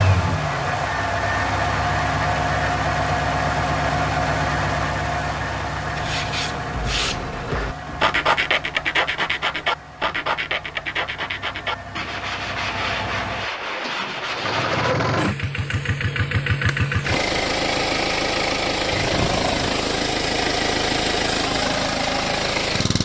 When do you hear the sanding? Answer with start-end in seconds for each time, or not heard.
6.0-14.9.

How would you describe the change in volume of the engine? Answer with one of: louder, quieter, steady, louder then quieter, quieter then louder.
quieter then louder.